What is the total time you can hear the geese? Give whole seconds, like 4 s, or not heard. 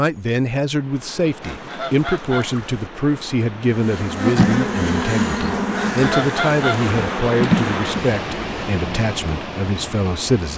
3 s.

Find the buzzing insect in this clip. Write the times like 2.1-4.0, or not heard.
3.8-9.0.